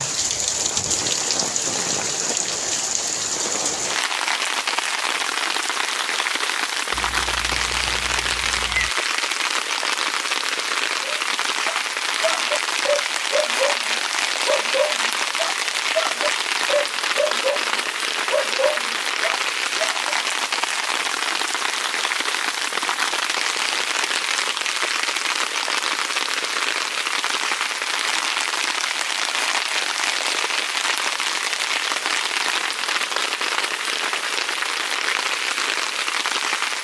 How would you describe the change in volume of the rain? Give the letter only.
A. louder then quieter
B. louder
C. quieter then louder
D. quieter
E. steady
E.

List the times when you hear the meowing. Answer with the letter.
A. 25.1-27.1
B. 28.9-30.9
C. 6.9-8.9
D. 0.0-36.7
C.